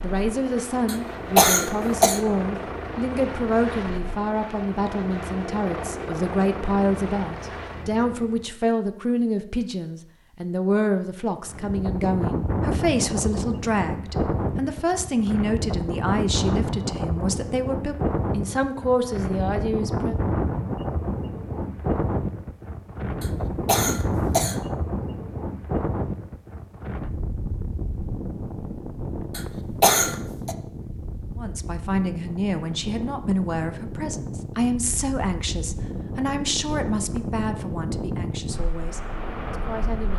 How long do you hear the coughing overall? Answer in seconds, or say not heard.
4 s.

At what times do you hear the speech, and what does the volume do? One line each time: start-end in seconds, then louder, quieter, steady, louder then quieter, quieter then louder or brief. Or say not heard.
0.0-20.1 steady
31.4-40.1 quieter.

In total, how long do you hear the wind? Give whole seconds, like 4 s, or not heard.
29 s.